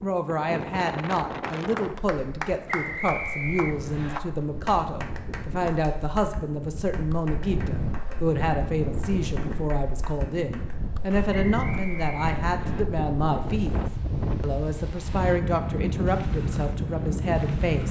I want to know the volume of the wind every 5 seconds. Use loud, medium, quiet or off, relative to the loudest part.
medium, medium, loud, loud.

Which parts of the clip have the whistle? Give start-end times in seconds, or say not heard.
2.6-4.2, 11.3-12.8.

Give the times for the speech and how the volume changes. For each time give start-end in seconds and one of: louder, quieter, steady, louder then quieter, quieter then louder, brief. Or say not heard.
0.0-17.8 steady.